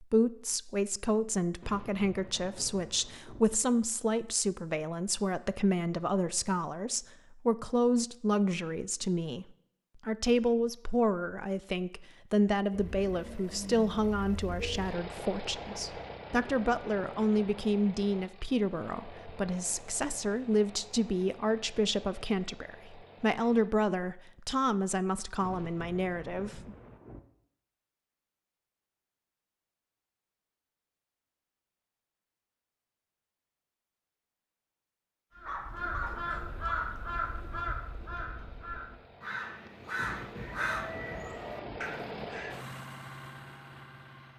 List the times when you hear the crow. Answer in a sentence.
You can hear the crow from 35.4 to 42.5 s.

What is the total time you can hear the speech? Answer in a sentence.
You can hear the speech for 26 seconds altogether.